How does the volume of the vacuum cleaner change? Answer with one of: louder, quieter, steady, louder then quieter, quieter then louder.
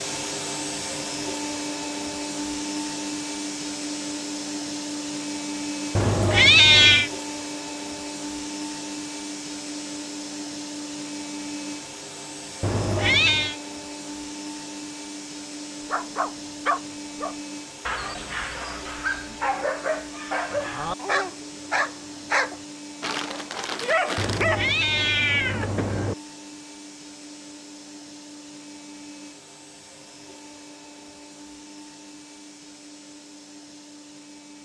quieter.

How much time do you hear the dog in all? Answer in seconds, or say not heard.
9 s.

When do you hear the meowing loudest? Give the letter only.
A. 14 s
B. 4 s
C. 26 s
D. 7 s
D.